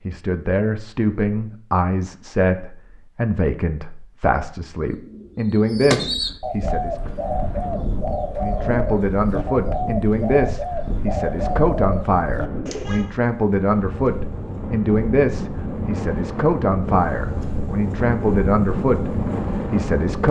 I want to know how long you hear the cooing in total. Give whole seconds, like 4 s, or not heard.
8 s.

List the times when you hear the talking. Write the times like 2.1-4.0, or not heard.
0.1-7.2, 8.4-19.1, 19.7-20.2.